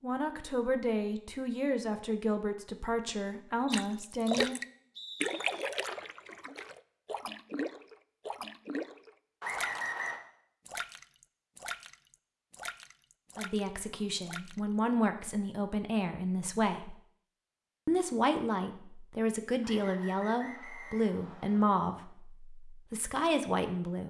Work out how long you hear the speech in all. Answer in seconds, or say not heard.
14 s.